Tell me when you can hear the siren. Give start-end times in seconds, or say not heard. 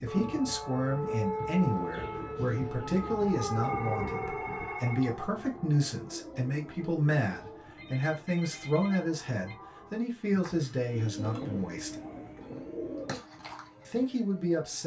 0.0-14.8.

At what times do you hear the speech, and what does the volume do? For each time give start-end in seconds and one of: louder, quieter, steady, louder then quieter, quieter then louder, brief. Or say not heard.
0.0-11.9 steady
13.8-14.8 brief.